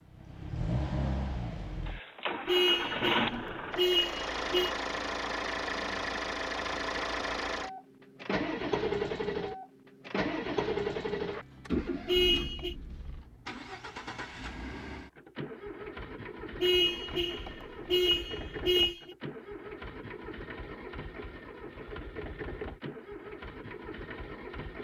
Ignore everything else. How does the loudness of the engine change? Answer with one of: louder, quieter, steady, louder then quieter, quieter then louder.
quieter.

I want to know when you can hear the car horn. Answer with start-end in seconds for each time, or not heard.
2.5-4.7, 12.1-12.8, 16.6-19.1.